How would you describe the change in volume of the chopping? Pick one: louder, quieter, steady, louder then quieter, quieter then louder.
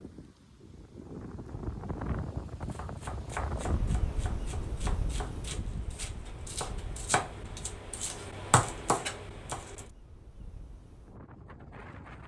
louder.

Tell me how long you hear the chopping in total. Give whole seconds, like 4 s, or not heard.
7 s.